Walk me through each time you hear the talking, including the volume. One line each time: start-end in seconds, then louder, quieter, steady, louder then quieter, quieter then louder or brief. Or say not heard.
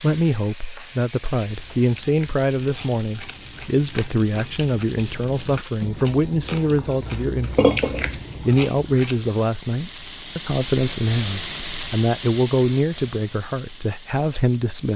0.0-14.9 steady.